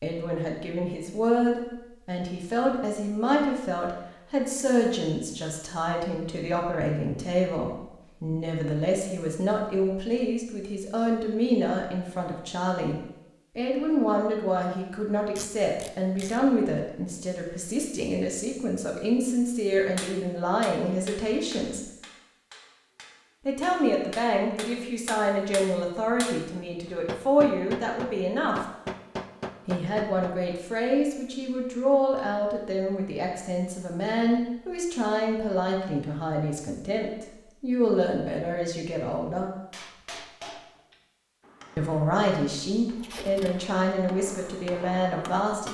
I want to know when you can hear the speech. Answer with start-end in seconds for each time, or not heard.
0.0-12.9, 13.6-21.9, 23.4-28.6, 29.6-39.5, 41.8-45.6.